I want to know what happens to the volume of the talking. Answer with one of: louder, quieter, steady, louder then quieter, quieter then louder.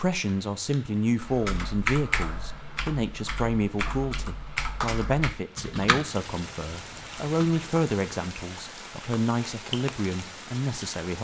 steady.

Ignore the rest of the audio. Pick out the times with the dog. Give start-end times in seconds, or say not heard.
not heard.